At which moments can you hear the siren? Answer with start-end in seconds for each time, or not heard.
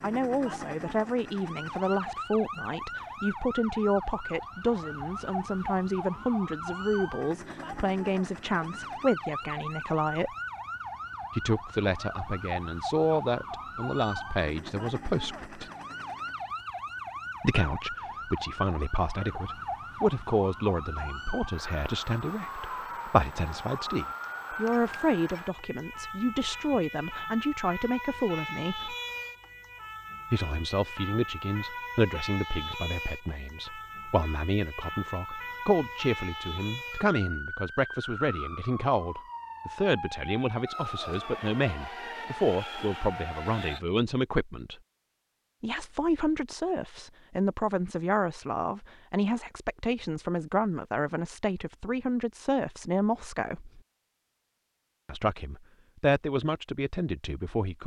0.0-43.8.